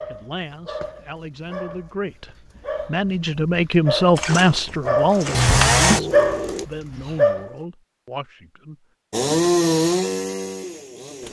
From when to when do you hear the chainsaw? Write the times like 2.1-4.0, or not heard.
4.2-6.7, 9.1-11.2.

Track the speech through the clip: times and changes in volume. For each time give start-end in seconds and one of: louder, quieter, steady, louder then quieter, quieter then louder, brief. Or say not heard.
0.1-8.8 louder then quieter.